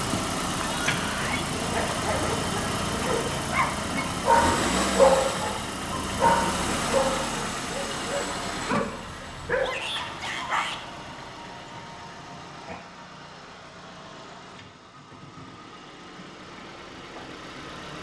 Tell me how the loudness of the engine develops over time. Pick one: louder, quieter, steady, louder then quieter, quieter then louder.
quieter.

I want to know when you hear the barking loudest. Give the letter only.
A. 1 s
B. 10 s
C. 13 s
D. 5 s
D.